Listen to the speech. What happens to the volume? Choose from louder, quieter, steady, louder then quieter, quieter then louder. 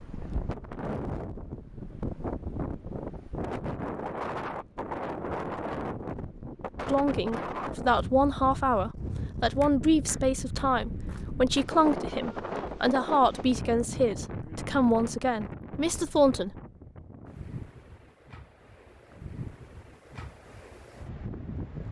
steady.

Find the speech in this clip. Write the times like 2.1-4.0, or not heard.
6.8-16.6.